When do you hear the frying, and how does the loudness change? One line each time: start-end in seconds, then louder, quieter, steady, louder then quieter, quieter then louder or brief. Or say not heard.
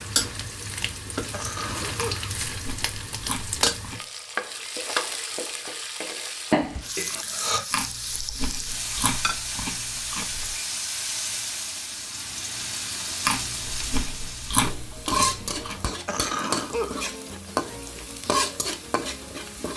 0.0-19.7 steady.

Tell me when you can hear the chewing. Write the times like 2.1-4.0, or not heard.
1.9-4.0, 7.7-10.6, 13.2-15.8.